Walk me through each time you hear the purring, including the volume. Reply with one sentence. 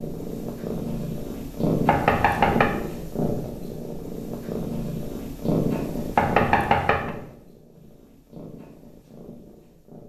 You can hear the purring from 0.0 to 10.0 s, getting quieter.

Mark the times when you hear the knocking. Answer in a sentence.
You can hear the knocking from 1.9 to 2.7 s and from 6.2 to 7.1 s.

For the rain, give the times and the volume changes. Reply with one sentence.
The rain can't be heard in this clip.